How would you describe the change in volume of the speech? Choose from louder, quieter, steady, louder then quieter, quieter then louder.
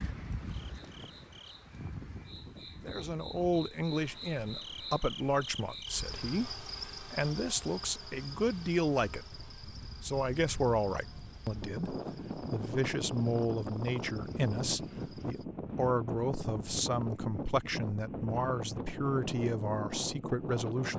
steady.